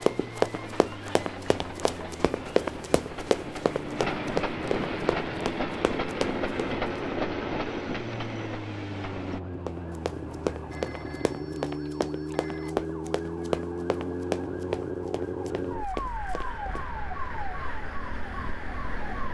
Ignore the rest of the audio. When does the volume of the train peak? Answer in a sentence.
The volume of the train peaks at 7 seconds.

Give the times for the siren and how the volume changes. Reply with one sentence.
You can hear the siren from 0.0 to 19.2 s, getting louder.